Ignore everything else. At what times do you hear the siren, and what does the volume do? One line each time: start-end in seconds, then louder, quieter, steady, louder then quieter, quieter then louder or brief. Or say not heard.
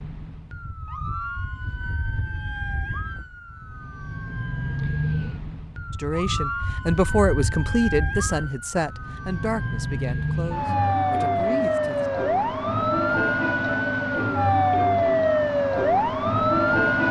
0.0-17.0 louder.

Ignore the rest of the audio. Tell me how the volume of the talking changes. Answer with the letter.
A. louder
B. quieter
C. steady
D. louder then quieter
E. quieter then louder
B.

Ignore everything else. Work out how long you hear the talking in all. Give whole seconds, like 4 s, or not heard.
6 s.